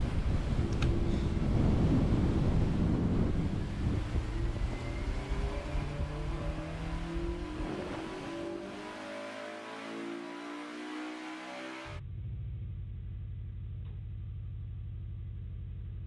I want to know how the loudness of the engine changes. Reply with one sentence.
The volume of the engine goes down.